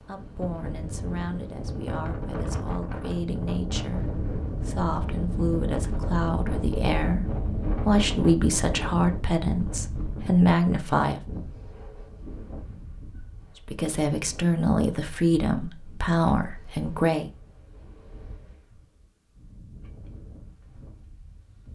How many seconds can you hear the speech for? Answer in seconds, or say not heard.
15 s.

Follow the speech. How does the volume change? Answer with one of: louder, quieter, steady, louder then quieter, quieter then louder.
louder.